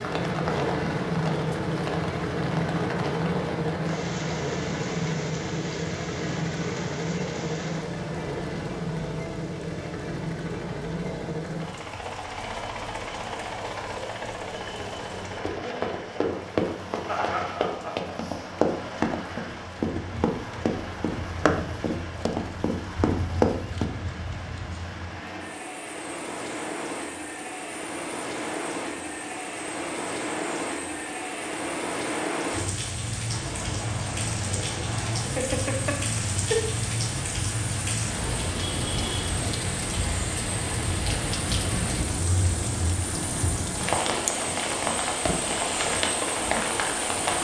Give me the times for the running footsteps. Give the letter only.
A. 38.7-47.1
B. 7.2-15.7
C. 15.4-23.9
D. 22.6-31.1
C.